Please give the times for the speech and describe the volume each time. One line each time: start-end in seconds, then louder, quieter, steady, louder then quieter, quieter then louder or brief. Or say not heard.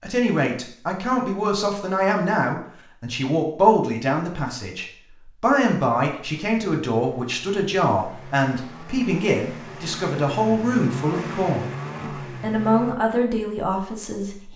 0.0-14.5 steady.